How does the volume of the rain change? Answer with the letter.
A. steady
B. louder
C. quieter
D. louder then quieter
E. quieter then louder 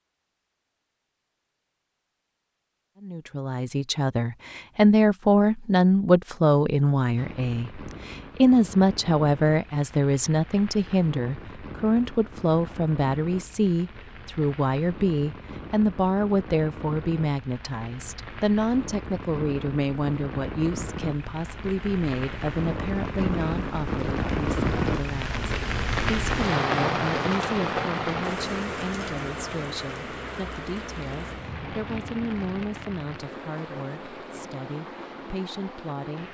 D.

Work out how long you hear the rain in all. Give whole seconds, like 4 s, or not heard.
29 s.